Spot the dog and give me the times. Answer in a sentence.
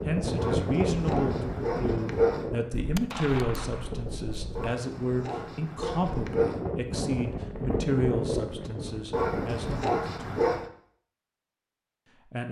You can hear the dog from 0.3 to 2.5 s, from 4.5 to 6.7 s and from 9.1 to 10.7 s.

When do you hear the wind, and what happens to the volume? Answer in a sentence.
The wind can be heard from 0.0 to 9.8 s, getting quieter then louder.